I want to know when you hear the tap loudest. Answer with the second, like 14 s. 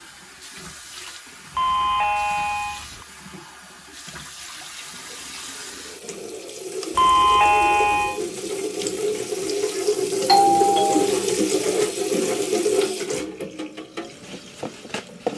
11 s.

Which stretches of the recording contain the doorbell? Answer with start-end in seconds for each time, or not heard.
1.6-3.0, 7.0-8.2, 10.2-11.1.